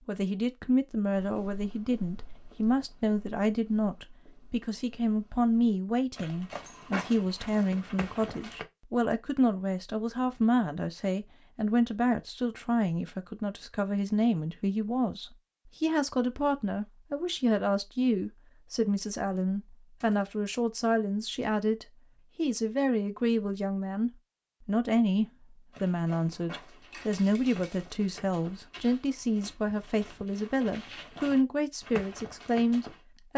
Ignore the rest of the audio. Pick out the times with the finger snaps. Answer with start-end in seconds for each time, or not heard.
not heard.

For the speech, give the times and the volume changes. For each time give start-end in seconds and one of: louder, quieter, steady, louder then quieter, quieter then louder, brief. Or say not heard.
0.1-33.3 steady.